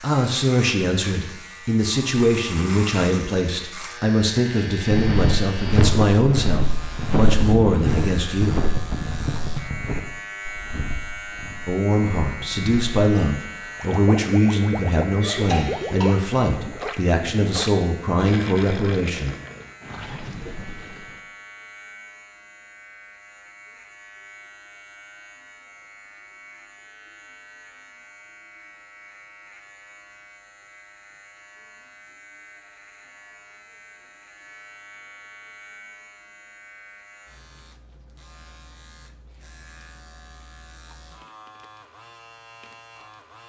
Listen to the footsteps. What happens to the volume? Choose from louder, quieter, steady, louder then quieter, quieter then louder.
quieter.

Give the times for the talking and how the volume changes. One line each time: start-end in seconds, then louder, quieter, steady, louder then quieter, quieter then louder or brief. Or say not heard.
0.0-8.7 steady
11.7-19.4 steady.